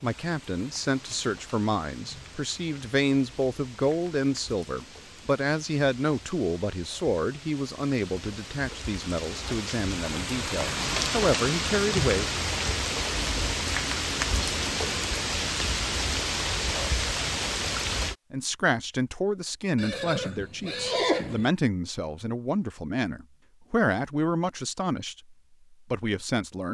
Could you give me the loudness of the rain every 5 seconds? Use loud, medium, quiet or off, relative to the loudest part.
quiet, quiet, loud, loud, off, off.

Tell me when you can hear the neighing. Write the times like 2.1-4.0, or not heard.
19.8-21.5.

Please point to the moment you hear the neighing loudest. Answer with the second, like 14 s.
21 s.